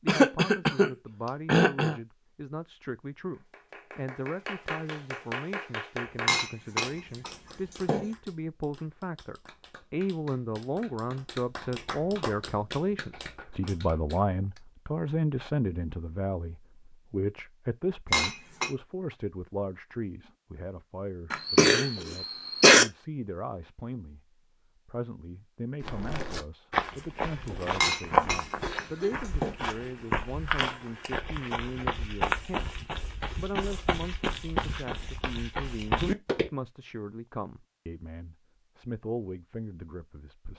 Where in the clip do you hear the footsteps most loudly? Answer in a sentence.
The volume of the footsteps peaks at 28 seconds.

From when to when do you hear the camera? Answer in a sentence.
The camera can't be heard in this clip.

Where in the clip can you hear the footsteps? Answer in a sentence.
You can hear the footsteps from 25.8 to 36.5 s.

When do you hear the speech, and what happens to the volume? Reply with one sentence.
You can hear the speech from 0.0 to 40.5 s, getting louder then quieter.